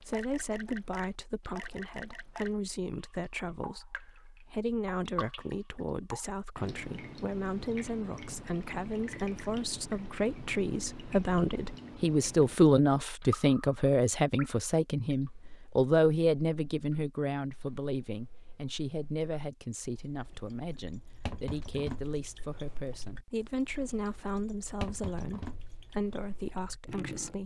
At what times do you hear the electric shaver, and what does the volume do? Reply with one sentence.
The electric shaver can't be heard in this clip.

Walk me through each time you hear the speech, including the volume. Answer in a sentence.
The speech can be heard from 0.0 to 27.4 s, getting louder then quieter.